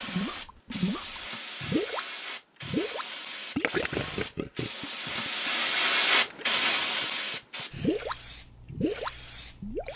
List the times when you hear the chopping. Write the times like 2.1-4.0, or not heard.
not heard.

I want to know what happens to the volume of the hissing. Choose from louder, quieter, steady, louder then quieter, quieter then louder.
louder then quieter.